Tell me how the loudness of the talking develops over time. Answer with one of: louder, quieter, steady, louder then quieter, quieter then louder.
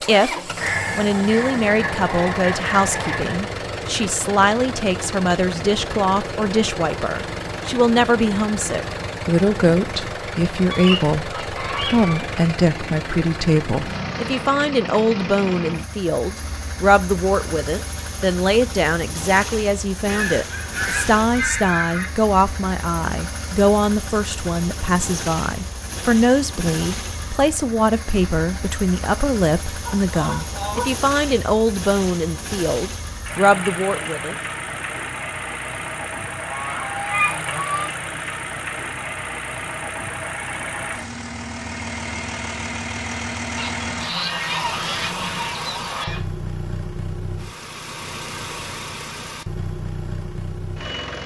steady.